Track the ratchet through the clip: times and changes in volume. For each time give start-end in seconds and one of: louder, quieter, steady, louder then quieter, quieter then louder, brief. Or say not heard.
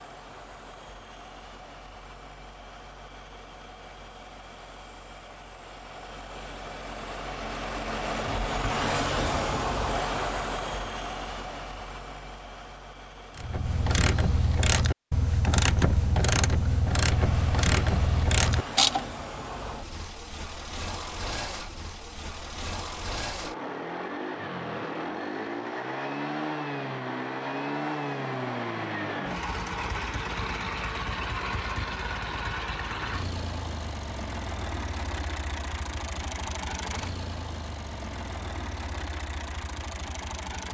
13.3-19.1 steady.